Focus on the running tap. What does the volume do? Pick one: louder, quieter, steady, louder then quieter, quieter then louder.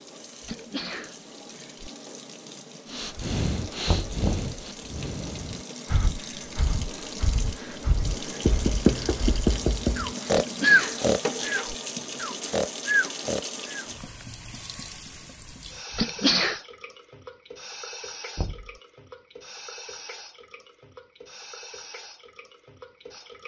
louder then quieter.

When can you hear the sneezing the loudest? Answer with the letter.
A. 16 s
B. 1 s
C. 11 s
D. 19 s
A.